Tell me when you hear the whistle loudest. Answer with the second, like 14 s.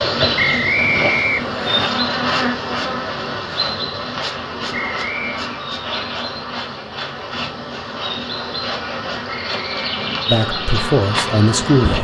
1 s.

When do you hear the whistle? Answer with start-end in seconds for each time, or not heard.
0.3-1.9, 4.7-5.5, 9.5-9.9.